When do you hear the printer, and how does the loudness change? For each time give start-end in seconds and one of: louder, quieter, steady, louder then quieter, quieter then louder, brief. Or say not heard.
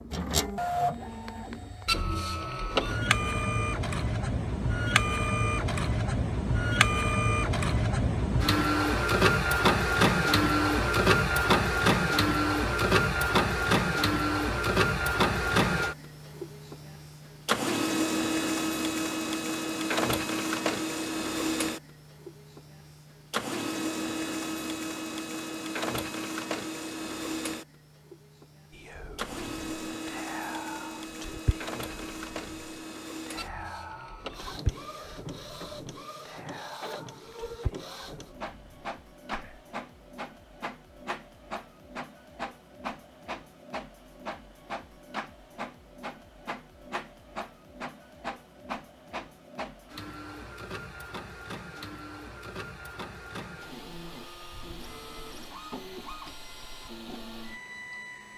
0.0-58.3 quieter.